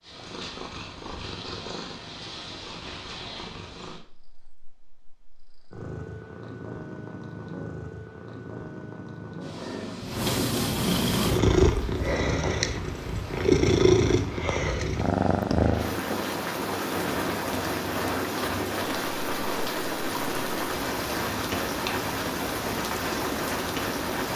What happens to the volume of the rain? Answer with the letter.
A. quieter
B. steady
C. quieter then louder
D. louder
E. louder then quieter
D.